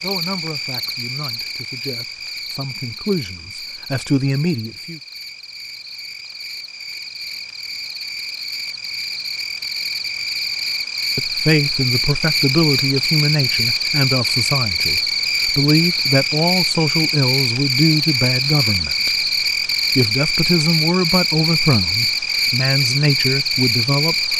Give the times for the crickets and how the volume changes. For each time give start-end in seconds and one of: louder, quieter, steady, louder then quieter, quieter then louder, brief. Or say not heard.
0.0-24.3 louder.